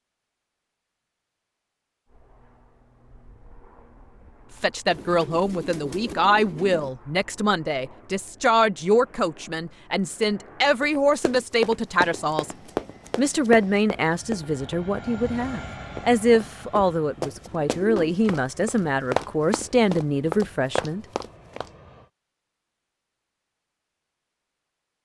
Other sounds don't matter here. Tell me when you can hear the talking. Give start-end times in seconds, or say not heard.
4.6-12.5, 13.2-21.1.